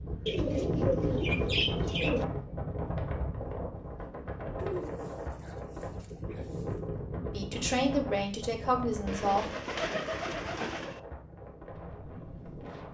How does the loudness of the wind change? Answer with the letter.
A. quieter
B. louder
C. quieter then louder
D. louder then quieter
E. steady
A.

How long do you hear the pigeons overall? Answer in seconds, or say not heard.
6 s.